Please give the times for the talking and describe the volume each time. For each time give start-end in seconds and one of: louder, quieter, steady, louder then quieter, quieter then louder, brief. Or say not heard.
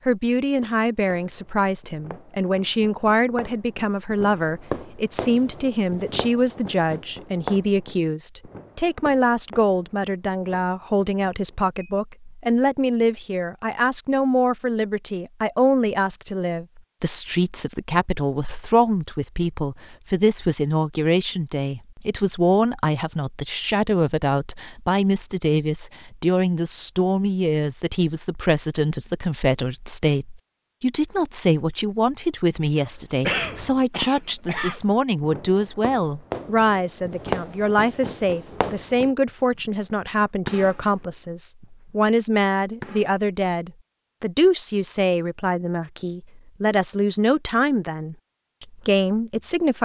0.1-49.8 steady.